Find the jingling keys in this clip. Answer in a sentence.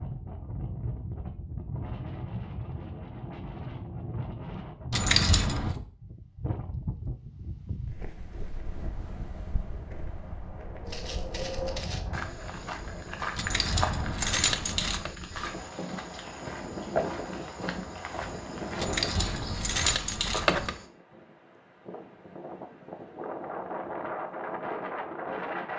The jingling keys can be heard from 4.9 to 5.8 s, from 13.3 to 15.1 s and from 18.8 to 20.8 s.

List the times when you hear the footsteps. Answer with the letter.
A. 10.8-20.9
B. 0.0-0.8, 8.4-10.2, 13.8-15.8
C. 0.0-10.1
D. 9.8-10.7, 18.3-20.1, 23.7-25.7
A.